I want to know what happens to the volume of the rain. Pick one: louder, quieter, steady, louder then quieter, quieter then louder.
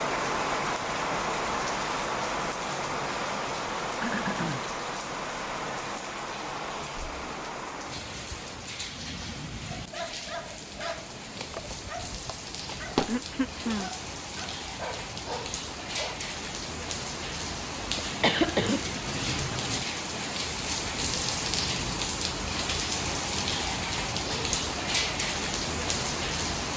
quieter then louder.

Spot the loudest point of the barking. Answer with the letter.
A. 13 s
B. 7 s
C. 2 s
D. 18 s
A.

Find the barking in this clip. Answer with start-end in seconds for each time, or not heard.
9.7-16.2.